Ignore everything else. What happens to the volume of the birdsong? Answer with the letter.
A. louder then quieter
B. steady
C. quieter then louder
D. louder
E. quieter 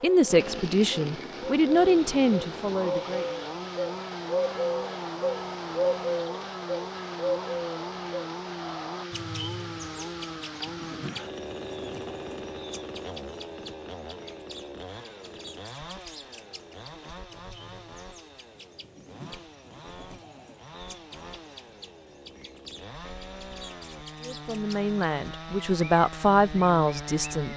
E.